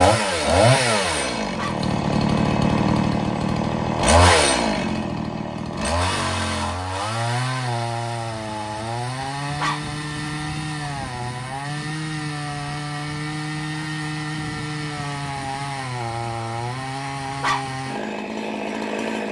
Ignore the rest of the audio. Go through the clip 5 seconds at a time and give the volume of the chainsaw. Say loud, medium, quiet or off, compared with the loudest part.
loud, medium, medium, medium.